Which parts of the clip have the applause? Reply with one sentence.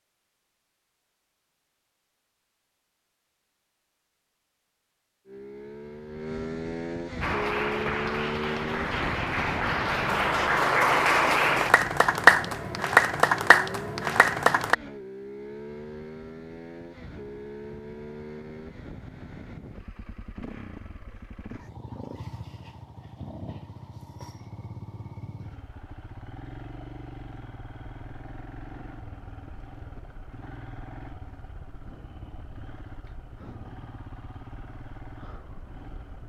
You can hear the applause from 7.2 to 14.8 s.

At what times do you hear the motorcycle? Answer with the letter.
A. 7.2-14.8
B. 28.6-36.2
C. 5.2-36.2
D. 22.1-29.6
C.